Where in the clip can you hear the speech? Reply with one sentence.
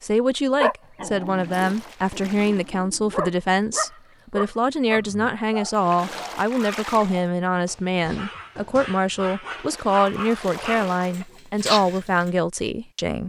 You can hear the speech from 0.0 to 13.2 s.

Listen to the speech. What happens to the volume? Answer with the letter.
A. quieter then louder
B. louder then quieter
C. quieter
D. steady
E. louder
D.